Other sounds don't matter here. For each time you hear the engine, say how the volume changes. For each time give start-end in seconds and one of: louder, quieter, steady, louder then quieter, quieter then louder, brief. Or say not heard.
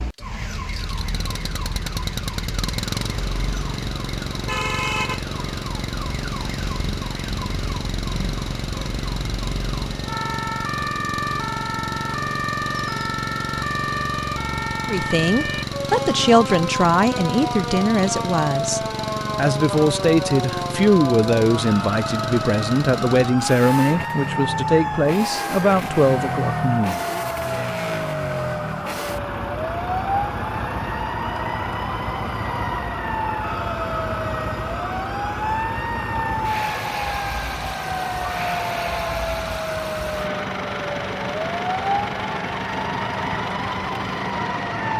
0.0-44.9 steady.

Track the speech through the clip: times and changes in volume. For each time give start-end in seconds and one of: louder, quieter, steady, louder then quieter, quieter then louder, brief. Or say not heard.
14.8-27.1 steady.